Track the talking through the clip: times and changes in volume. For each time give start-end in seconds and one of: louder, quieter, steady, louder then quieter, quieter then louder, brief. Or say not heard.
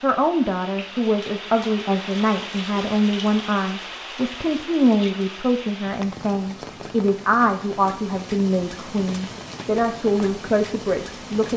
0.0-11.5 steady.